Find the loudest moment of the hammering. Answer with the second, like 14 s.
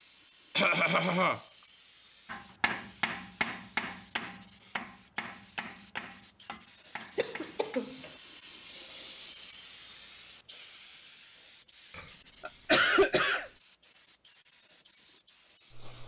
4 s.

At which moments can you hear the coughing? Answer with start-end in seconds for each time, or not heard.
0.6-1.4, 7.2-8.1, 11.9-13.5.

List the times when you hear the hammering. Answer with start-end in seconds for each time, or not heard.
2.3-7.8.